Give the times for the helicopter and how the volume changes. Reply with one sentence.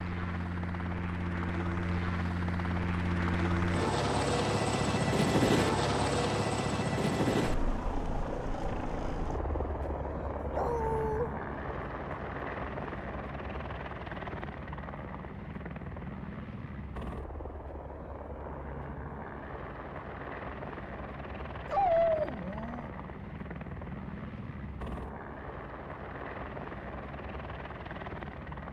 You can hear the helicopter from 0.0 to 28.6 s, getting quieter.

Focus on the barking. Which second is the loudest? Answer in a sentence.
The volume of the barking peaks at 22 seconds.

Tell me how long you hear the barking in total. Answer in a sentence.
The barking can be heard for 2 seconds in total.